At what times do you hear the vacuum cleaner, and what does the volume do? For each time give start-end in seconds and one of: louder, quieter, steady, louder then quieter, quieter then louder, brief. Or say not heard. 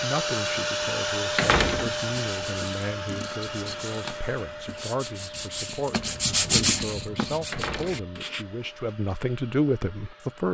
0.0-10.4 quieter.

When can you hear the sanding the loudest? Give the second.
7 s.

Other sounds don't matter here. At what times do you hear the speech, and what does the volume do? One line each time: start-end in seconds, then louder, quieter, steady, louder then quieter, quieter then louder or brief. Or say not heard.
0.0-10.4 louder.